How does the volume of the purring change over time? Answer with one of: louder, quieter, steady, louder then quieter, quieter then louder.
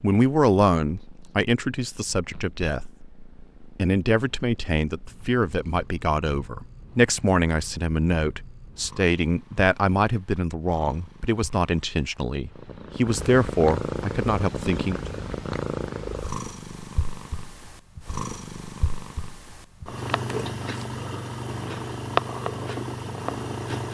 louder.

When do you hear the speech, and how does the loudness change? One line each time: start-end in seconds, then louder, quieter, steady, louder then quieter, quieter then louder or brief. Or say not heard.
0.0-15.0 steady.